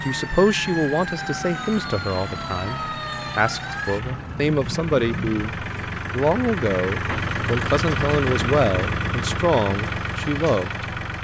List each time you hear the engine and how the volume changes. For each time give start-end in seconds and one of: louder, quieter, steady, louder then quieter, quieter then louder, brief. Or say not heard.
0.0-11.1 louder.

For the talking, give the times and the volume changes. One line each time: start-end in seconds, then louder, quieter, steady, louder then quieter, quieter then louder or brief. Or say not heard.
0.0-11.0 steady.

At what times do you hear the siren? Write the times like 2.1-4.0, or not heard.
0.0-5.5.